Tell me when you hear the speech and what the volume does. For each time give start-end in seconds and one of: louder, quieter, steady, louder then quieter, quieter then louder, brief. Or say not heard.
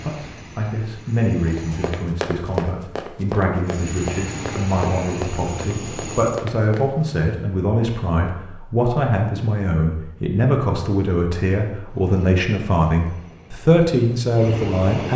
0.0-15.1 louder.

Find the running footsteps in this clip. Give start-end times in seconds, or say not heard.
1.4-6.9.